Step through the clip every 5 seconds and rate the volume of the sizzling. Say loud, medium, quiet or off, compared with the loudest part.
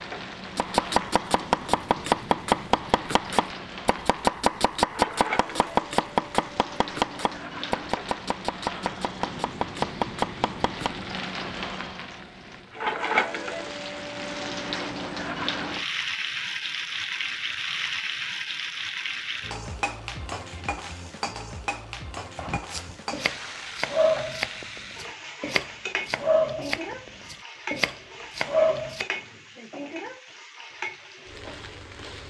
medium, medium, loud, loud, medium, medium, medium.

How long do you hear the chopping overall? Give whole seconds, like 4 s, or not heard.
17 s.